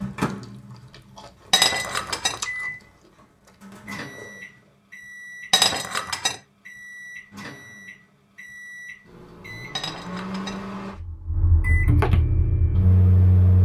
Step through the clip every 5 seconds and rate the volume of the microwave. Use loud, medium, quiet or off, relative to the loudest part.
medium, quiet, loud.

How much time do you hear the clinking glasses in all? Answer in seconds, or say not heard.
3 s.